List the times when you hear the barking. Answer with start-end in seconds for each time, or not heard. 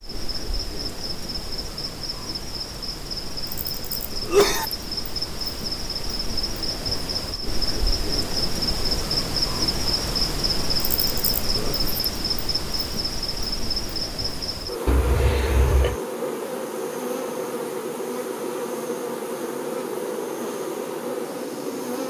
not heard.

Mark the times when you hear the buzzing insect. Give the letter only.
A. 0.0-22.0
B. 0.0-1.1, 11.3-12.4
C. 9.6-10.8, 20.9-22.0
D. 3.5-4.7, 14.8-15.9
A.